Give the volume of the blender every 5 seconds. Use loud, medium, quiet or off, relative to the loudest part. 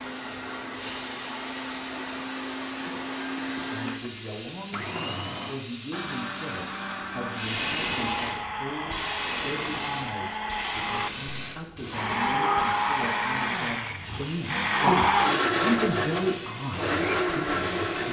medium, medium, loud, loud.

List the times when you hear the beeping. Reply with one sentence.
You can't hear the beeping here.